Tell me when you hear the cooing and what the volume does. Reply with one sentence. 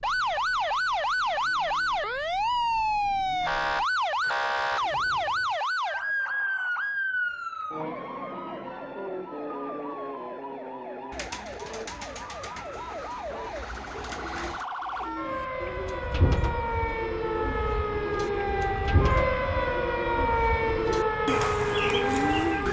The cooing can be heard from 11.1 to 22.6 s, getting louder.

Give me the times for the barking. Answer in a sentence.
You can't hear the barking here.